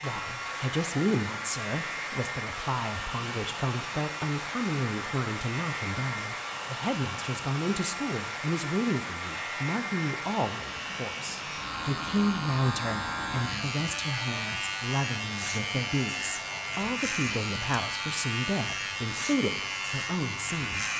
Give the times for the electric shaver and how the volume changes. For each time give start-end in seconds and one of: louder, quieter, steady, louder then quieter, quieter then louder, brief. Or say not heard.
0.0-20.9 louder.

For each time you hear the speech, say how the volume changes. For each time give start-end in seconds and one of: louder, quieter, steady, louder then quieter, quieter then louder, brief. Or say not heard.
0.0-20.9 steady.